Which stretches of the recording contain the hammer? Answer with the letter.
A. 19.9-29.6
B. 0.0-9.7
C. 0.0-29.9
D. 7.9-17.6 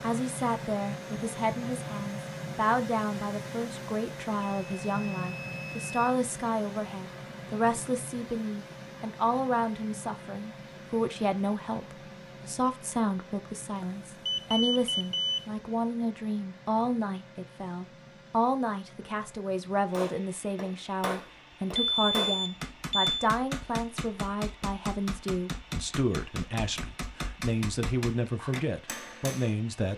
A.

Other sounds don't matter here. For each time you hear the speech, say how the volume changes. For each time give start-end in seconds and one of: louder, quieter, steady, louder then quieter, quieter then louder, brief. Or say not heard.
0.0-29.9 steady.